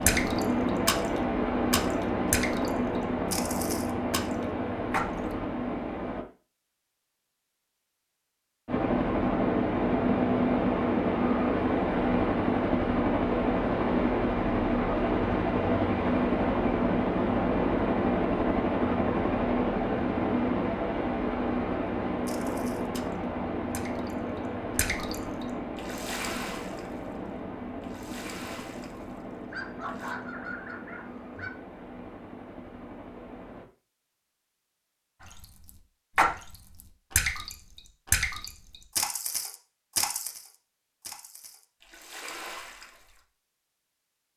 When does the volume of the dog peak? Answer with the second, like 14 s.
30 s.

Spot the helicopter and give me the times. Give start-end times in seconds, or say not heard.
0.0-6.2, 8.7-33.6.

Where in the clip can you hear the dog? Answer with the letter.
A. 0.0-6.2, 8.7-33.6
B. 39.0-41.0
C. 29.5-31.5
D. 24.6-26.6
C.